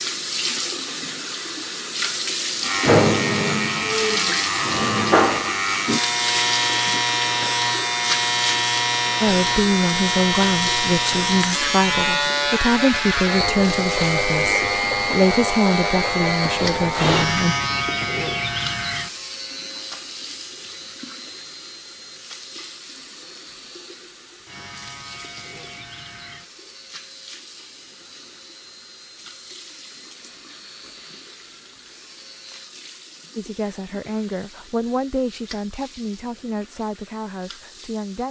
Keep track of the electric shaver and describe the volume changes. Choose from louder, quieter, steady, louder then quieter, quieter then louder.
quieter.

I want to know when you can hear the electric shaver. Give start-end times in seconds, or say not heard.
2.6-32.8.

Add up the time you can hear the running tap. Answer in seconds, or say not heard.
38 s.